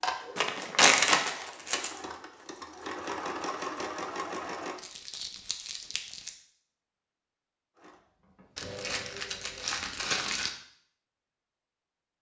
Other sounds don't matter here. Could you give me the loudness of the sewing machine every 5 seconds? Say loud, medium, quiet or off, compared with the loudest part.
loud, medium, off.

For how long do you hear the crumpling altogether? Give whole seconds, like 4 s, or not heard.
5 s.